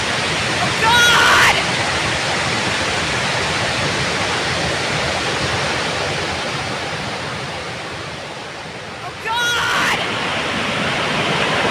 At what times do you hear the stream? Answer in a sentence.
The stream can be heard from 0.0 to 11.6 s.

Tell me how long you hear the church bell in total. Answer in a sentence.
The church bell can't be heard in this clip.